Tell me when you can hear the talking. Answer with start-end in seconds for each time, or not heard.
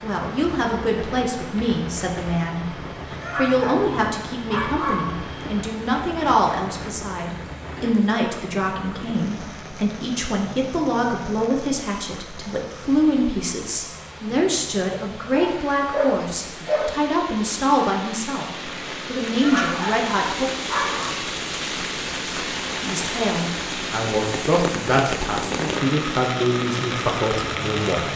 0.0-20.5, 22.9-28.1.